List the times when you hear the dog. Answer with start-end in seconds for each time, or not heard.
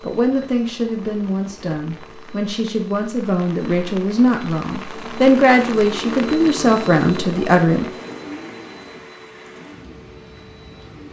not heard.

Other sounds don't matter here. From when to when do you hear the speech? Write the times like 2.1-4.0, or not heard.
0.0-7.8.